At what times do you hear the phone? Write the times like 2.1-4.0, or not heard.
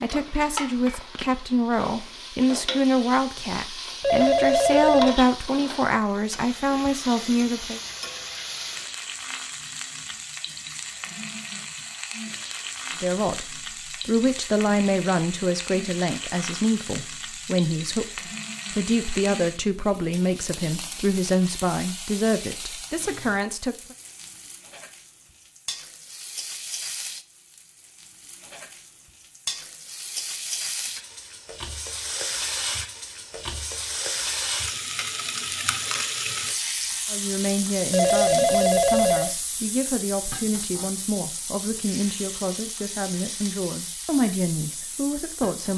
4.0-5.2, 37.9-39.4.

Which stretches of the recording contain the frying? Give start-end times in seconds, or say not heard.
0.0-45.7.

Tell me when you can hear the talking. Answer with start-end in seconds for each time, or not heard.
0.0-7.8, 13.0-23.9, 37.0-45.7.